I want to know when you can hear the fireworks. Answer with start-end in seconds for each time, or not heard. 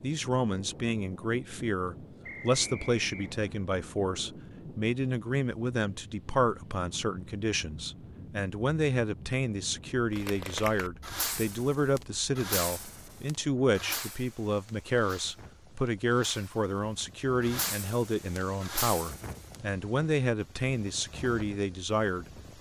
10.2-19.6.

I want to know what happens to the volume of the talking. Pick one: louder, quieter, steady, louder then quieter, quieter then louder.
steady.